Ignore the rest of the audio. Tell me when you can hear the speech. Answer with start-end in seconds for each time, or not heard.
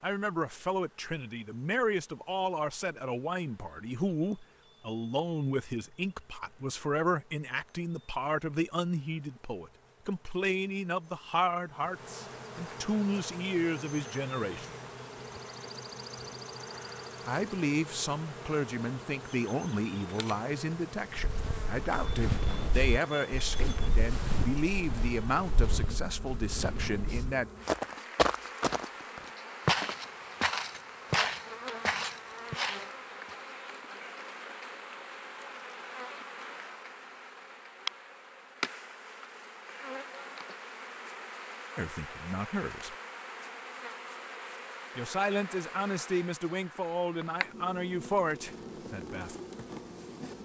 0.0-14.7, 17.2-27.5, 41.8-43.0, 45.0-49.4.